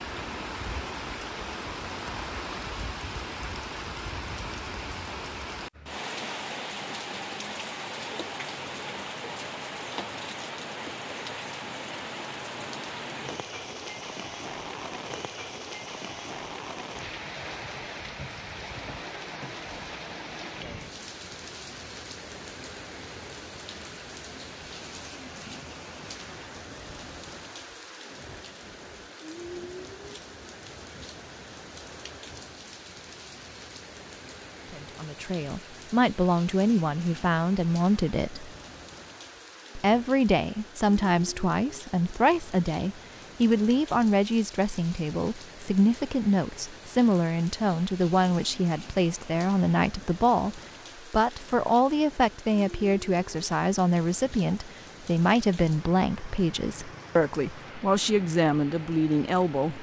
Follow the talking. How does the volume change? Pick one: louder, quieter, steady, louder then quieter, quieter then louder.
steady.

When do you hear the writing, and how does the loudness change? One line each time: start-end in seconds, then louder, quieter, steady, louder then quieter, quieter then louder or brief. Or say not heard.
not heard.